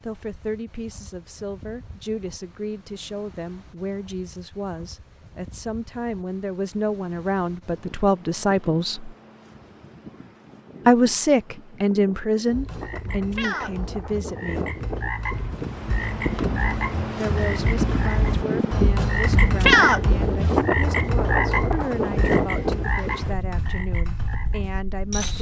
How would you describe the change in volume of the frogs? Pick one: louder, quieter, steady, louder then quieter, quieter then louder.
louder then quieter.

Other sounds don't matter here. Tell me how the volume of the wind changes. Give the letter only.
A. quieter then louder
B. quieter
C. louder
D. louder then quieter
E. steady
C.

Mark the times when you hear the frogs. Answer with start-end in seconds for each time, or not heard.
12.4-25.3.